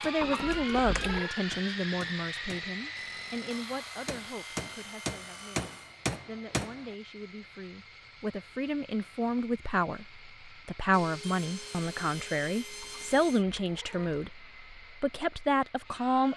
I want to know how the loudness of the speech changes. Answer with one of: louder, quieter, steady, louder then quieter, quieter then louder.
quieter then louder.